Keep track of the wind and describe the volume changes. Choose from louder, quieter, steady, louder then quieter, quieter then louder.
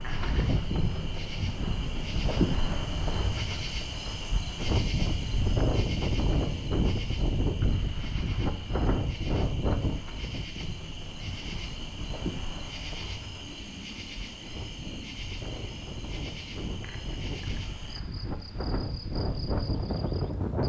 quieter then louder.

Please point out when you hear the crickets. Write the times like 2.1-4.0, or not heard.
0.0-20.6.